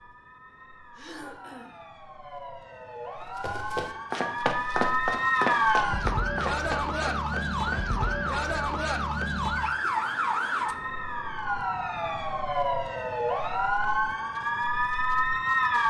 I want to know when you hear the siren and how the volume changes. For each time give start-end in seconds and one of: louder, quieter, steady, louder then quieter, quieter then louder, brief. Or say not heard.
0.0-15.8 louder.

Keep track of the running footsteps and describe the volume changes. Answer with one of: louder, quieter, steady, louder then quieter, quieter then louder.
quieter.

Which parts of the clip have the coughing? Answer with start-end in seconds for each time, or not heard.
0.9-1.8.